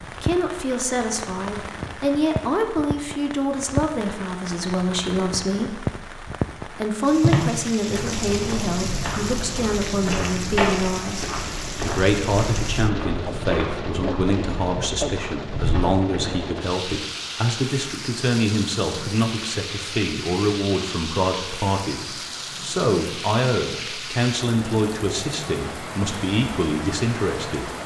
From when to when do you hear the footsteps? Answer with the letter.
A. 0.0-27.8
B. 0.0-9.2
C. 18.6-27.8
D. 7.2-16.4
D.